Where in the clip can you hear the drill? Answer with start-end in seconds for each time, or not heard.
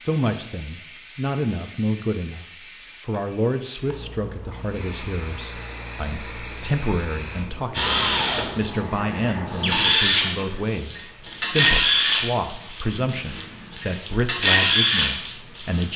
7.7-15.9.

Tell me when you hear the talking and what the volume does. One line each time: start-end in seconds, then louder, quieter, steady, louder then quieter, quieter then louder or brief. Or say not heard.
0.0-2.5 brief
3.0-15.9 steady.